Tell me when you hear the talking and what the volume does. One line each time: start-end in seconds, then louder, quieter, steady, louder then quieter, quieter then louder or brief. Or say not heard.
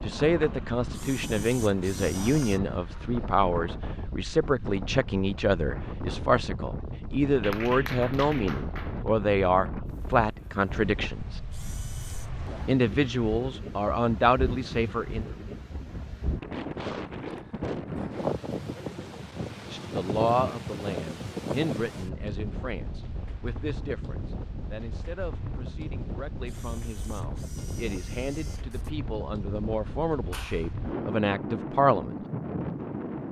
0.0-11.4 steady
12.7-15.2 brief
19.7-32.1 quieter then louder.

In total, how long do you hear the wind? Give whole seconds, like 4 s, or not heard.
33 s.